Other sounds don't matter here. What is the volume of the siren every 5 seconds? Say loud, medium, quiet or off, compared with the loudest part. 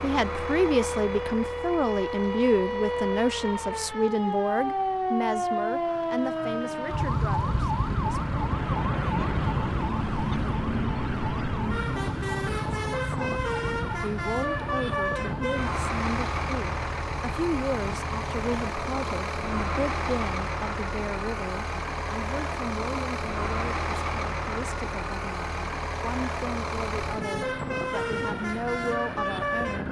loud, loud, medium, medium, quiet, quiet.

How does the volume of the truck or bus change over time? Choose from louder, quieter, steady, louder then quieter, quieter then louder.
louder.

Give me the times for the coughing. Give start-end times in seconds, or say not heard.
not heard.